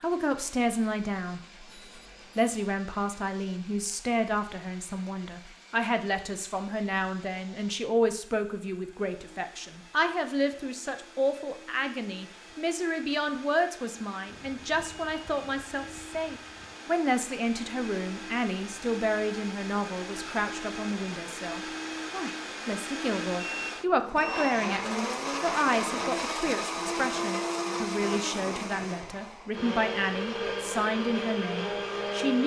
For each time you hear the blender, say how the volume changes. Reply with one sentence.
You can hear the blender from 0.0 to 32.4 s, getting louder.